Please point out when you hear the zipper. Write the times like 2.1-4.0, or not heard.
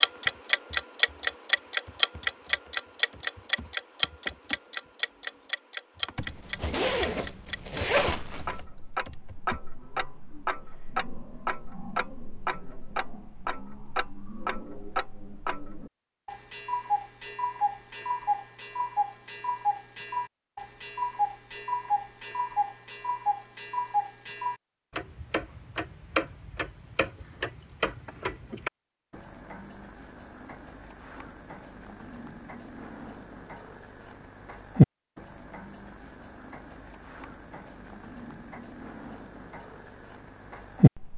6.2-8.7.